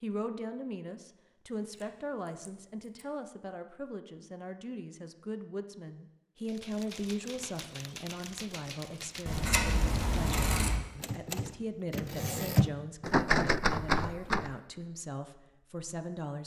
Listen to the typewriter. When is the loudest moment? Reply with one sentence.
The volume of the typewriter peaks at 13 seconds.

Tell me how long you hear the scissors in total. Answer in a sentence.
You can hear the scissors for 3 seconds altogether.